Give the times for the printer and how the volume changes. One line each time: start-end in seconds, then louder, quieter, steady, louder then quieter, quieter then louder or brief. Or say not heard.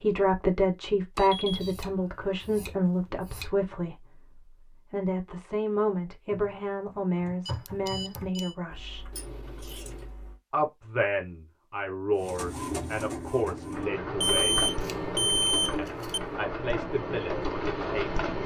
12.2-18.4 steady.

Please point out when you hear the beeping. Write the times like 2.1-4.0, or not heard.
1.1-1.7, 7.5-8.6, 14.2-16.2.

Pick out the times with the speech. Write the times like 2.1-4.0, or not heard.
0.0-9.1, 10.5-14.7, 15.8-18.2.